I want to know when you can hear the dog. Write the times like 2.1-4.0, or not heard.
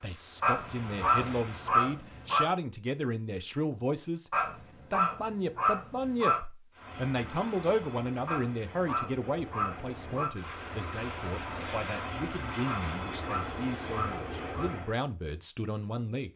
0.4-2.5, 4.3-6.4, 8.2-10.3, 12.7-14.8.